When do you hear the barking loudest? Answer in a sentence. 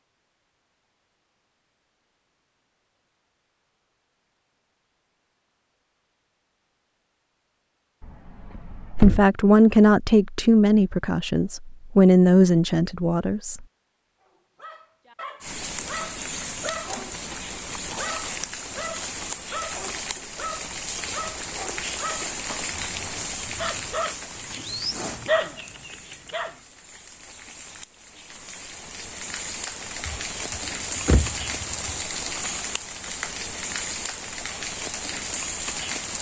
The volume of the barking peaks at 25 seconds.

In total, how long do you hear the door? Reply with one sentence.
The door can be heard for 3 seconds in total.